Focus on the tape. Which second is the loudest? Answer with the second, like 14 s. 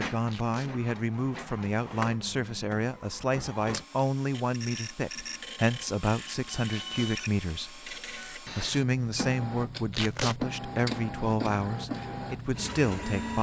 10 s.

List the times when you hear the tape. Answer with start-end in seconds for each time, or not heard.
0.2-0.7, 6.7-7.2, 9.9-10.3.